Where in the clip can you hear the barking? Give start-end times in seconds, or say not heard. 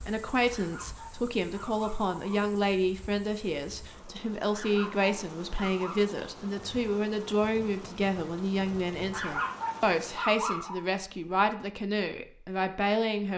0.5-2.5, 4.5-6.2, 9.1-10.8.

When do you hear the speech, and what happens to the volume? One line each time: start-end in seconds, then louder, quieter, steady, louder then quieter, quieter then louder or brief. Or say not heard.
0.0-13.3 steady.